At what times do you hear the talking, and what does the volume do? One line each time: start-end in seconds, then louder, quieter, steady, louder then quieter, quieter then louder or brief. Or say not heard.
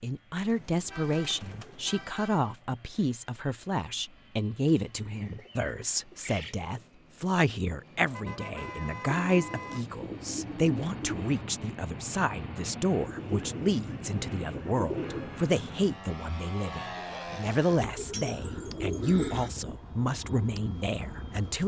0.0-21.6 steady.